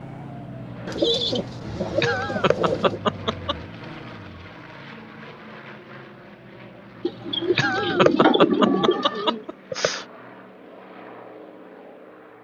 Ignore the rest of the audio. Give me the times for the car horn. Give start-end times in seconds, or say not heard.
not heard.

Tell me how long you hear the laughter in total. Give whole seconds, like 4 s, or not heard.
4 s.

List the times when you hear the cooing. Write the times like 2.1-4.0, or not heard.
0.8-3.0, 7.0-9.4.